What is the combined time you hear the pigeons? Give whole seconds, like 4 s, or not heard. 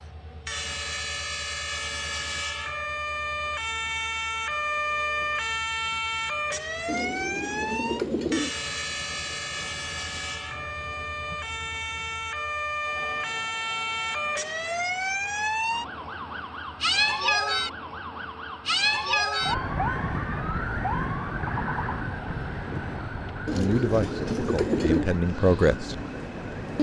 3 s.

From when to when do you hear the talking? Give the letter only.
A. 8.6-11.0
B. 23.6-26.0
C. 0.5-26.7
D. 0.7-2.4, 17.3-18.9
B.